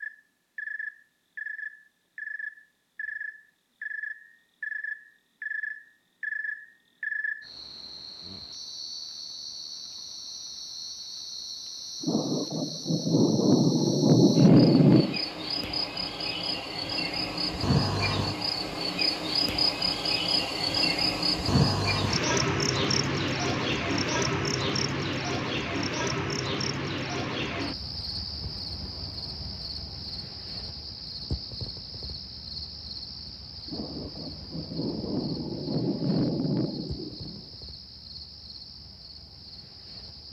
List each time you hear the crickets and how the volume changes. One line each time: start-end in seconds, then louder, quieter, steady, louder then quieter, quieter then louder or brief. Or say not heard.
0.0-40.2 louder then quieter.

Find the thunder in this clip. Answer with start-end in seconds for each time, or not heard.
12.0-15.2, 33.6-37.5.